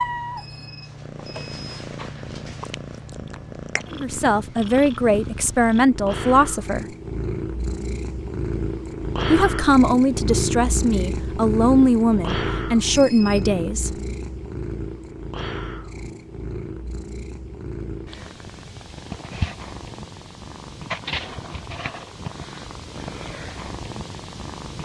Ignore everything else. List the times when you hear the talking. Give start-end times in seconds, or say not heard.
3.9-6.8, 9.3-13.9.